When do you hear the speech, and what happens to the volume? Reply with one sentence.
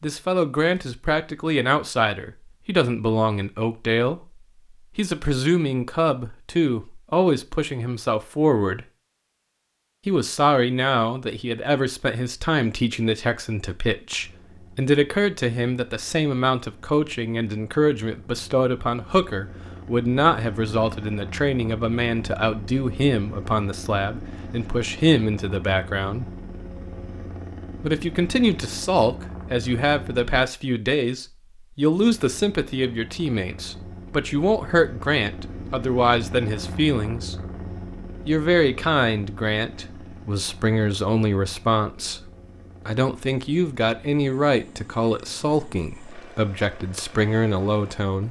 The speech can be heard from 0.0 to 8.8 s, at a steady volume; from 10.1 to 26.3 s, at a steady volume; from 27.8 to 37.5 s, at a steady volume; and from 38.2 to 48.2 s, at a steady volume.